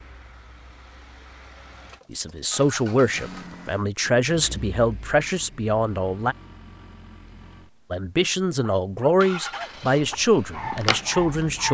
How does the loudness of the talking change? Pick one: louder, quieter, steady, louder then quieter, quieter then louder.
steady.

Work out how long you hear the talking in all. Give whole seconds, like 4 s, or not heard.
8 s.